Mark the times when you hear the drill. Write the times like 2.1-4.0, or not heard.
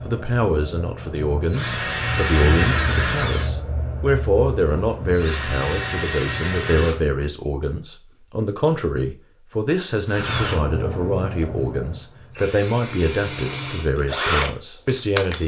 0.0-7.2, 10.1-15.4.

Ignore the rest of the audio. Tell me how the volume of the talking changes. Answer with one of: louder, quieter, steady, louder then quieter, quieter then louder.
steady.